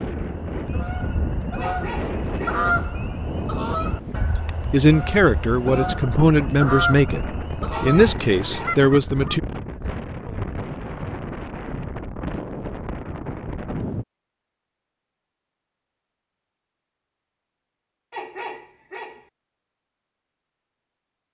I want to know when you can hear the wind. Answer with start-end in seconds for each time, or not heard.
0.0-14.1.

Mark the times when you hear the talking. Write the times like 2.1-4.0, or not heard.
4.7-9.4.